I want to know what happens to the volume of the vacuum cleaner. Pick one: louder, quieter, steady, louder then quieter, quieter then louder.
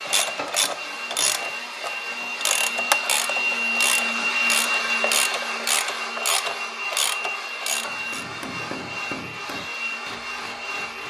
louder then quieter.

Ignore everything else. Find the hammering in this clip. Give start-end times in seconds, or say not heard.
7.8-11.0.